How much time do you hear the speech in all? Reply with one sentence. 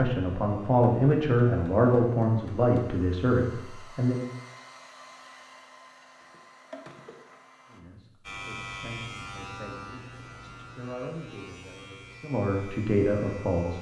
You can hear the speech for 10 seconds altogether.